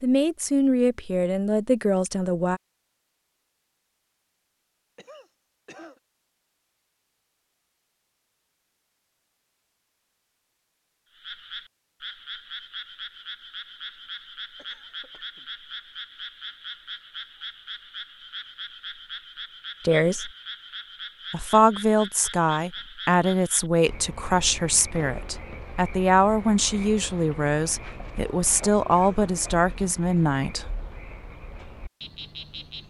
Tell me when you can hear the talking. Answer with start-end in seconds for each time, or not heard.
0.0-2.6, 19.9-20.3, 21.3-30.6.